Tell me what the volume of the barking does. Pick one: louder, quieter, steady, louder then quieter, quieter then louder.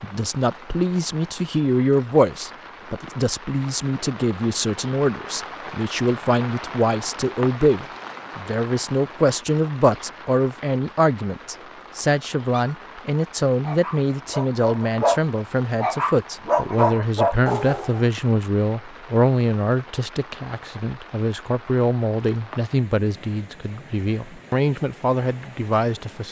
louder.